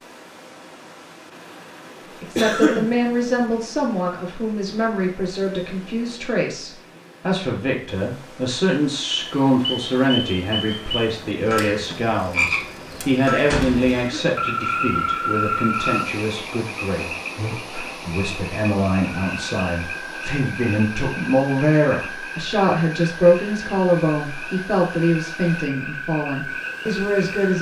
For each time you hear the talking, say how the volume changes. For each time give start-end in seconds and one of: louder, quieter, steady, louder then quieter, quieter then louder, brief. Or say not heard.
2.2-27.5 steady.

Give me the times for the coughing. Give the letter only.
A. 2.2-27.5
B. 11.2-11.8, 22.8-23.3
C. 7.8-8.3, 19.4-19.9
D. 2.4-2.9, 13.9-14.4
D.